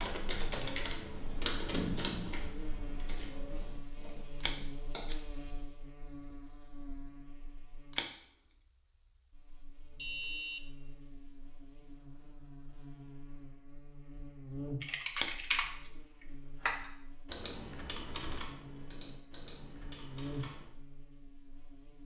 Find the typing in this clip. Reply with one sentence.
The typing can be heard from 0.0 to 5.2 s and from 14.8 to 20.7 s.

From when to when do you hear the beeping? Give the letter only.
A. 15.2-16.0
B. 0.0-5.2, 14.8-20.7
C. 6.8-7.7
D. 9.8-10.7
D.